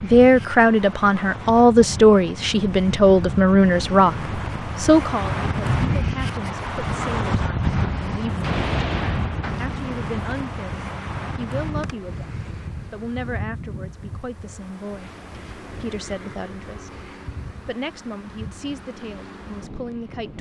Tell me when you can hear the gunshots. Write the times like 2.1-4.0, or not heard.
7.8-9.7.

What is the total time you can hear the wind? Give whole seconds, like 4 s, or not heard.
20 s.